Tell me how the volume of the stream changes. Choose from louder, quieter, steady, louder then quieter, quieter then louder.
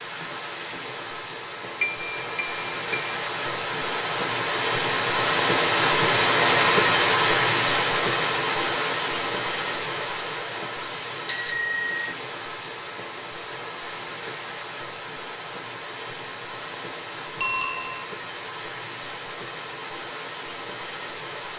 louder then quieter.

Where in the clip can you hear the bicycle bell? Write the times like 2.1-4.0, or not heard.
1.8-3.1, 11.2-12.1, 17.4-18.1.